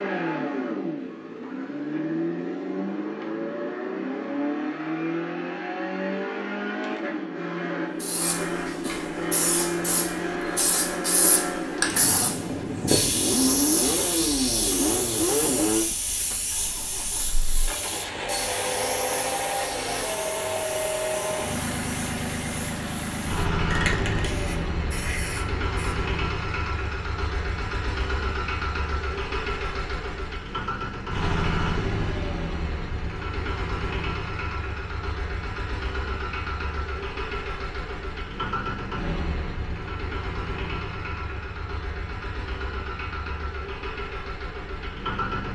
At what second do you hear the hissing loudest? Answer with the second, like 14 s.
13 s.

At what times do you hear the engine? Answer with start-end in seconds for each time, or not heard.
0.0-45.4.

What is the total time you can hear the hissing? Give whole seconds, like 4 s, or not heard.
18 s.